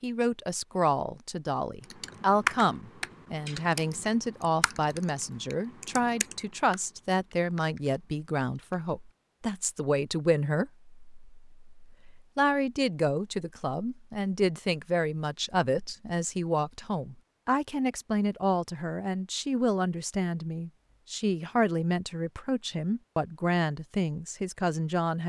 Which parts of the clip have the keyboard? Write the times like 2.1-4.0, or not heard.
1.9-8.9.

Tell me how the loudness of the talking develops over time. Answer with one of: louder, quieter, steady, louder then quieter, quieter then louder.
steady.